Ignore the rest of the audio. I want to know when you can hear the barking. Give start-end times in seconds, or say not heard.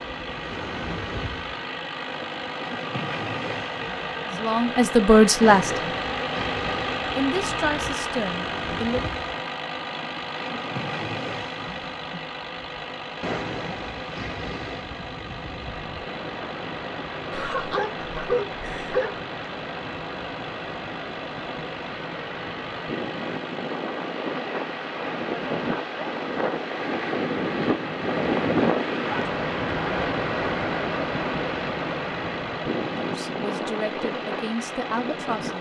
17.3-19.1.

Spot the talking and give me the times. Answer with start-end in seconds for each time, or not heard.
4.2-5.8, 7.2-9.2, 33.0-35.5.